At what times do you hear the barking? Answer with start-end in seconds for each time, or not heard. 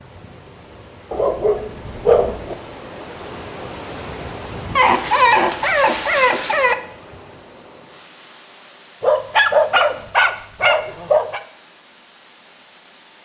1.1-2.5, 4.8-6.8, 9.0-11.4.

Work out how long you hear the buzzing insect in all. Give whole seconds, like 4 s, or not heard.
not heard.